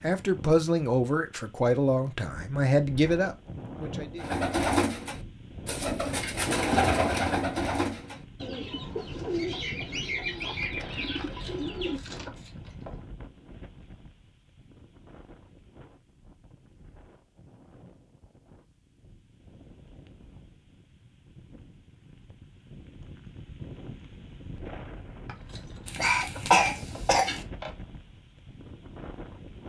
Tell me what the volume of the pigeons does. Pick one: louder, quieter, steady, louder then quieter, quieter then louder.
quieter.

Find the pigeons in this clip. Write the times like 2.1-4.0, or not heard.
4.2-12.2.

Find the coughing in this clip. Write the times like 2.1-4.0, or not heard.
25.9-27.4.